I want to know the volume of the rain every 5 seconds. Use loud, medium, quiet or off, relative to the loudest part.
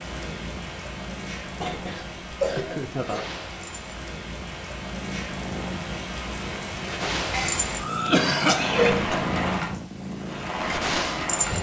medium, loud, loud.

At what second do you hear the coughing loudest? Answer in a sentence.
The volume of the coughing peaks at 8 seconds.